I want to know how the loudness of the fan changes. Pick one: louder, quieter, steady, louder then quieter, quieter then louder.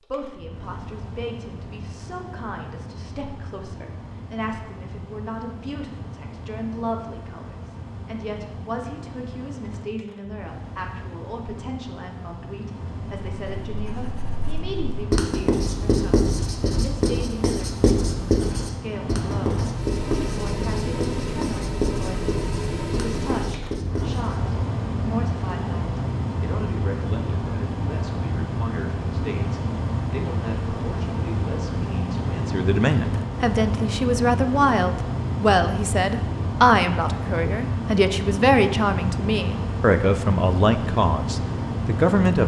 louder.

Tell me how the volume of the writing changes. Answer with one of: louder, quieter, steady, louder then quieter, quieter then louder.
quieter.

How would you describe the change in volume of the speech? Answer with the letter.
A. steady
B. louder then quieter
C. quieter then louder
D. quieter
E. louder
E.